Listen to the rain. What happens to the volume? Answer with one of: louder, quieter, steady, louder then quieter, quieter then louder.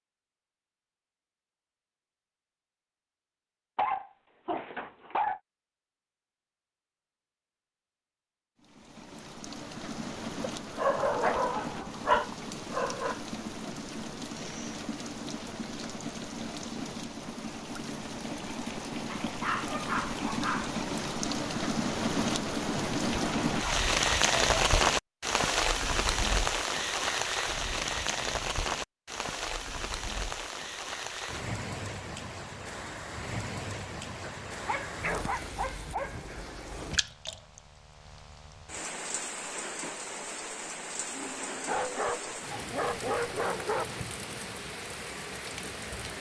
louder then quieter.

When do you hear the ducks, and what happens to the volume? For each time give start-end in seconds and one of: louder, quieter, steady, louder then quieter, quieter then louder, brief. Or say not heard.
not heard.